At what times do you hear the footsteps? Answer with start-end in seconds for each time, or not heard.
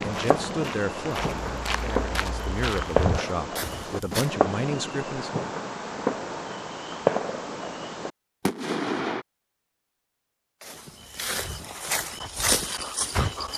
0.0-4.3, 10.6-13.5.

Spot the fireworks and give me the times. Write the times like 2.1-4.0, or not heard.
0.0-9.2.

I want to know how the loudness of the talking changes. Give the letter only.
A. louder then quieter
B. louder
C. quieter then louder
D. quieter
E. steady
C.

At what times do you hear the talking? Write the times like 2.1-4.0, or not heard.
0.0-5.5.